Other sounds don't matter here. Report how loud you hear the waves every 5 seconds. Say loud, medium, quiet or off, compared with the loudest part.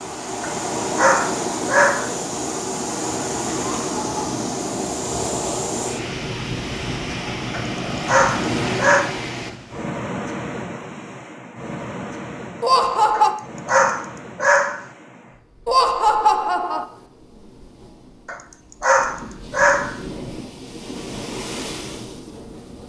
loud, loud, medium, quiet, medium.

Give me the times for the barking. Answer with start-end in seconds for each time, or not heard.
0.4-2.1, 7.5-9.1, 13.1-14.8, 18.2-20.0.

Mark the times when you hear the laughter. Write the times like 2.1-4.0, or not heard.
3.8-4.3, 12.6-13.3, 15.7-16.9.